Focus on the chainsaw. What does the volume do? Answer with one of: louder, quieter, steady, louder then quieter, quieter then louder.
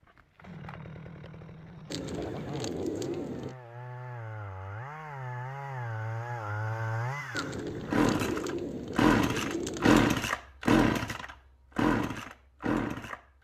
louder.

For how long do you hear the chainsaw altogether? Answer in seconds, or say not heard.
13 s.